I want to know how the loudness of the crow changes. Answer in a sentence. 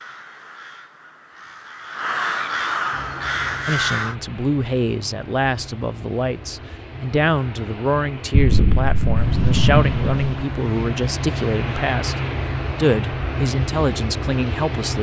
The volume of the crow goes up.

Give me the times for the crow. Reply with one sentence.
You can hear the crow from 0.0 to 4.2 s.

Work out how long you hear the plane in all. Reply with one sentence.
The plane can be heard for 12 seconds in total.